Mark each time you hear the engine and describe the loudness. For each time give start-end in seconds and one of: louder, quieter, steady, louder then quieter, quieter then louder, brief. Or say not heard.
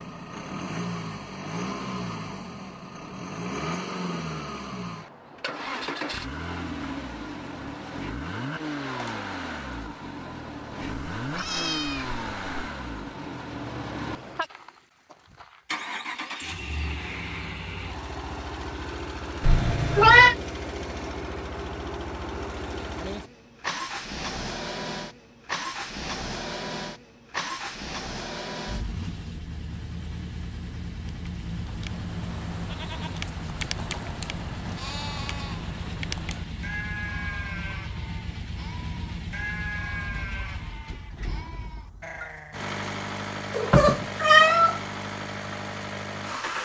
0.0-46.5 steady.